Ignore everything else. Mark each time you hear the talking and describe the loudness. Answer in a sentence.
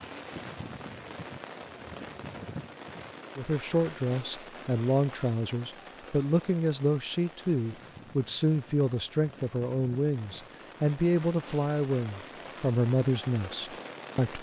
You can hear the talking from 3.4 to 14.3 s, at a steady volume.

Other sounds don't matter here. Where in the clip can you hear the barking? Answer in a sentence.
You can't hear the barking here.